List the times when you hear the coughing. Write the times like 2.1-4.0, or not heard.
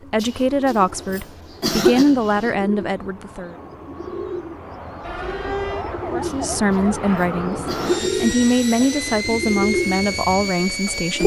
0.1-2.5, 6.2-8.9.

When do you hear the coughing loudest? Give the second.
2 s.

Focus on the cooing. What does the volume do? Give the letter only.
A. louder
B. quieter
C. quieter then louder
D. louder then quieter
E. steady
A.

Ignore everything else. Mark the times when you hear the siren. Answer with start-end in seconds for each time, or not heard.
5.0-7.2.